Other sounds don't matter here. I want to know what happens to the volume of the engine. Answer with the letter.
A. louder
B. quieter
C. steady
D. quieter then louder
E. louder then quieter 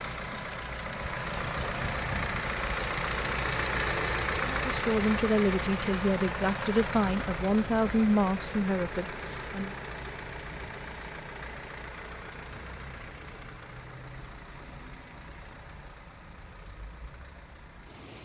B.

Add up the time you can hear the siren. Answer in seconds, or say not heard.
not heard.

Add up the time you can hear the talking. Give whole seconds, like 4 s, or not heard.
5 s.